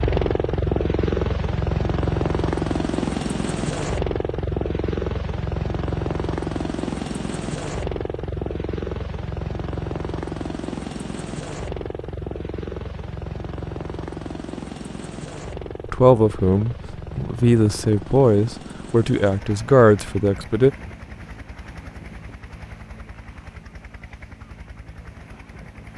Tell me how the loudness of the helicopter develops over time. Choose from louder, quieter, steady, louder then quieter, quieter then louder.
quieter.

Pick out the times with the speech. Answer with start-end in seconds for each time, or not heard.
15.8-20.7.